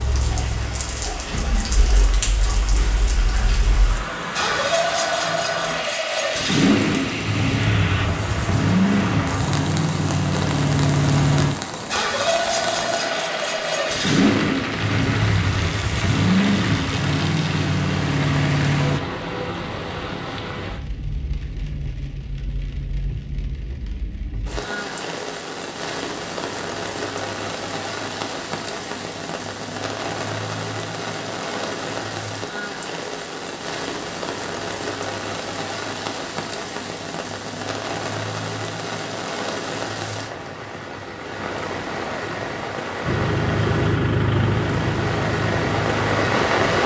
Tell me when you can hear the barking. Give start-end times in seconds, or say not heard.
not heard.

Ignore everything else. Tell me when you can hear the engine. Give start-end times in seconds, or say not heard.
0.0-19.0, 43.0-46.5.